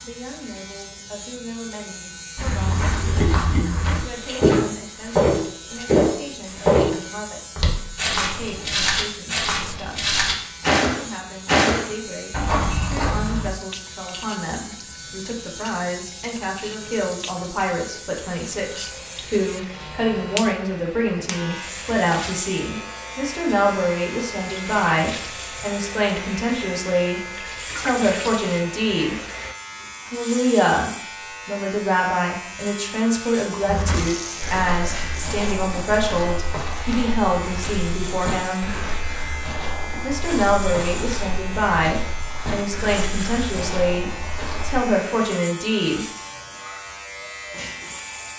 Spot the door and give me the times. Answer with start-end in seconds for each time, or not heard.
not heard.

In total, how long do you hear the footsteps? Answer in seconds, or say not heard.
22 s.